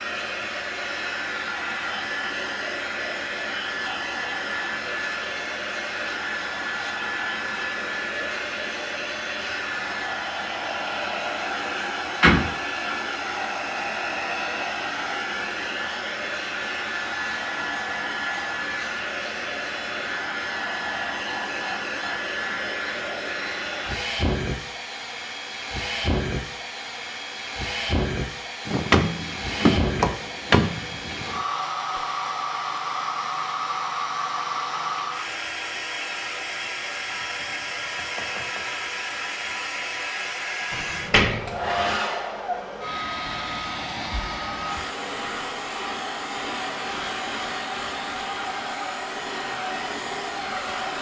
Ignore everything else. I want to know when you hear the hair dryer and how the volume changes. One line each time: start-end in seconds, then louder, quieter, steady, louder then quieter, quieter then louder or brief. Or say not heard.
0.0-50.9 steady.